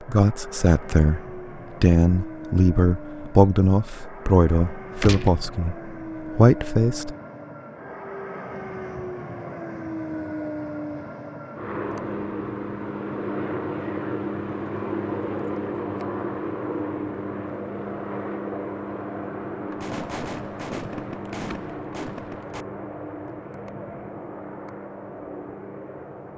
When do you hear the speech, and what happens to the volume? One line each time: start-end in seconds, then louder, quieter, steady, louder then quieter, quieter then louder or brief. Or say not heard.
0.1-7.1 steady.